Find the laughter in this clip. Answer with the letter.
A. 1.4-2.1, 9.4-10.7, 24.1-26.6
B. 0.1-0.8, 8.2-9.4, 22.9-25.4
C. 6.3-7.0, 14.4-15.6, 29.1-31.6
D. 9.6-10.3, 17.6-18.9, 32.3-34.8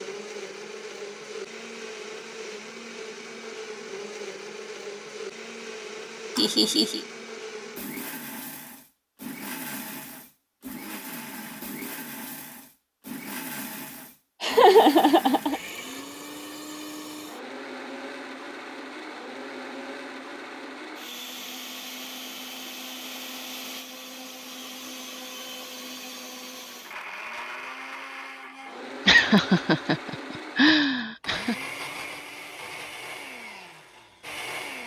C.